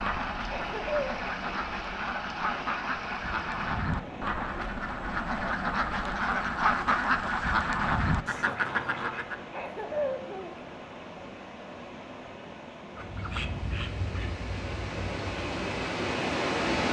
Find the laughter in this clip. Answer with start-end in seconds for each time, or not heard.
0.5-1.1, 9.5-10.6.